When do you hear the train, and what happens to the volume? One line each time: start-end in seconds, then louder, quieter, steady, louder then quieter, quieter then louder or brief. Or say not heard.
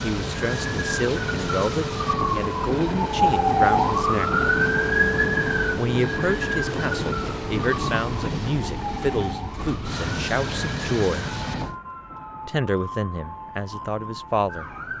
0.0-14.9 quieter.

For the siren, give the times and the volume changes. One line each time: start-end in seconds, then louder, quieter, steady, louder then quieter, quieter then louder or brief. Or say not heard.
0.1-14.9 louder then quieter.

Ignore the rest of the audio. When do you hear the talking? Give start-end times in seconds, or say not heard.
0.0-4.5, 5.8-11.2, 12.4-14.7.